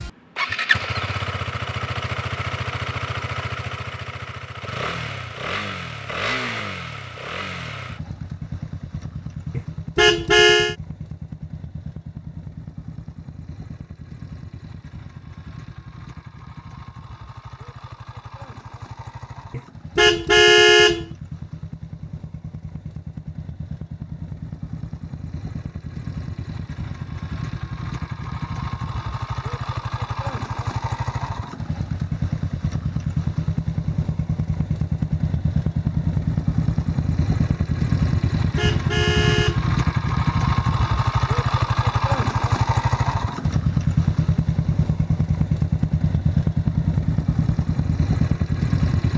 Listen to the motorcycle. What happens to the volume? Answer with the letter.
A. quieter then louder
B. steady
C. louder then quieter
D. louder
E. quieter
A.